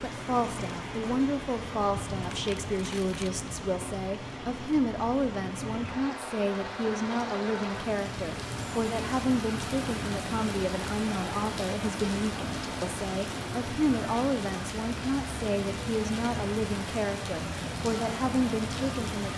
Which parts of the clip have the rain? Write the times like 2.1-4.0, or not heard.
0.0-19.3.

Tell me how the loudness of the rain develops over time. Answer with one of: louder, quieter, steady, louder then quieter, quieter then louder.
steady.